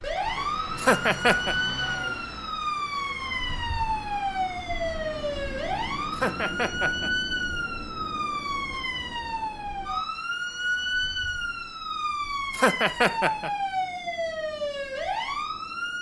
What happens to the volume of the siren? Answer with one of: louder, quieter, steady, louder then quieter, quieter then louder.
steady.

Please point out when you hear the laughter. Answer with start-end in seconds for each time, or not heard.
0.8-1.6, 6.1-7.1, 12.5-13.5.